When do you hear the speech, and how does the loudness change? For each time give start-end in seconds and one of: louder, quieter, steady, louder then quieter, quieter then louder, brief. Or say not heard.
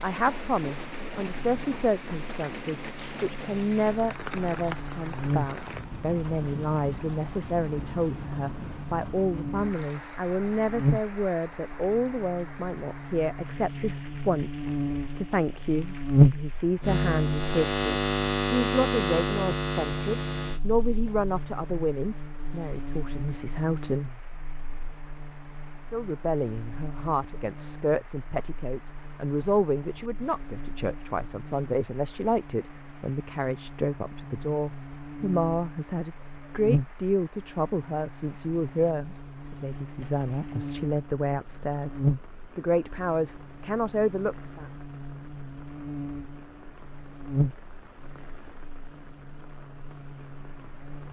0.0-24.1 steady
25.9-44.6 steady.